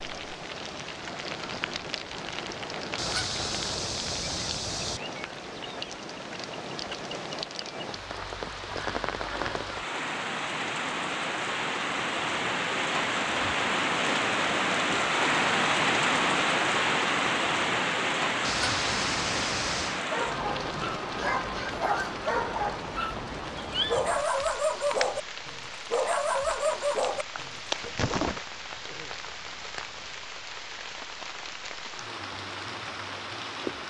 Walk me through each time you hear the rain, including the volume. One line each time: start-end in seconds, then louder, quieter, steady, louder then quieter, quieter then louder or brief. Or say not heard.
0.0-33.8 louder then quieter.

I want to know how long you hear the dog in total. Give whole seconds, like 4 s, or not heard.
8 s.